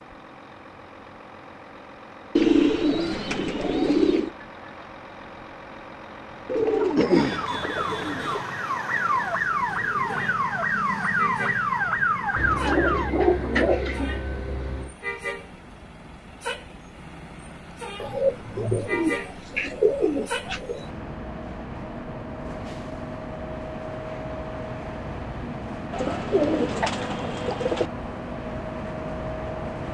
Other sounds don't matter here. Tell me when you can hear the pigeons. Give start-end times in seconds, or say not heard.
2.4-4.3, 6.5-8.4, 12.3-14.9, 18.0-20.9, 25.9-27.9.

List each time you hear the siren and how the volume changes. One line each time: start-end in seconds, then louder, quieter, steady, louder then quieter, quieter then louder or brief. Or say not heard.
7.2-13.1 louder.